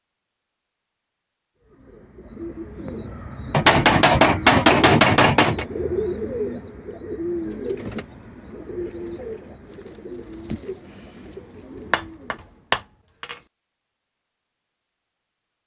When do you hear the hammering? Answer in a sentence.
The hammering can be heard from 3.5 to 5.7 s and from 11.9 to 13.3 s.